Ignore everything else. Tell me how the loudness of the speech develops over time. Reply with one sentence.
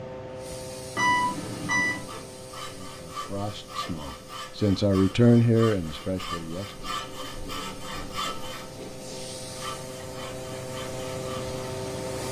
The volume of the speech goes up, then down.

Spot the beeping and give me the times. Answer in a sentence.
You can hear the beeping from 0.9 to 2.1 s.